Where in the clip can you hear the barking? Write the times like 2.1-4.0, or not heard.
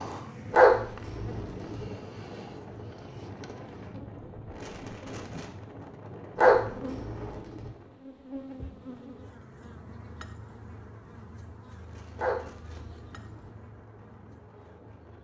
0.5-1.9, 6.3-7.7, 12.2-13.5.